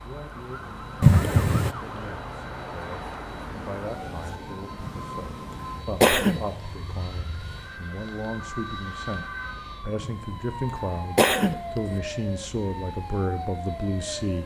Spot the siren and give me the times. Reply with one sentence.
You can hear the siren from 0.0 to 14.4 s.